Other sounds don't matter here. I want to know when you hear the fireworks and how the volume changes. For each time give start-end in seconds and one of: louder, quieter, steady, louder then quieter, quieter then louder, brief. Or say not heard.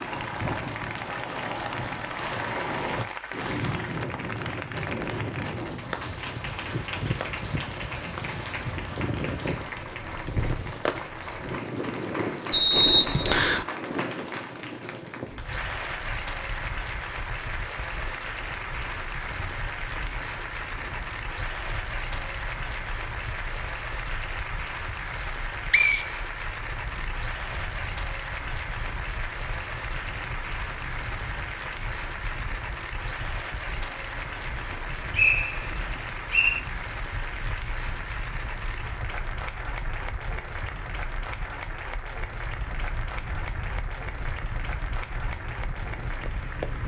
not heard.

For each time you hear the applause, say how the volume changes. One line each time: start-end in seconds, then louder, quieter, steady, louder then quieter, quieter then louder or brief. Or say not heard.
0.0-46.8 steady.